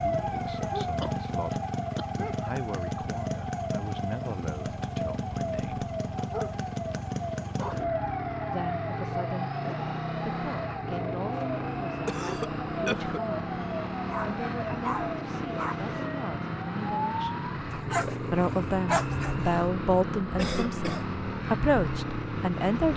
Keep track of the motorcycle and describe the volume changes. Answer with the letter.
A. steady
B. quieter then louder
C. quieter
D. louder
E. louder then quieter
A.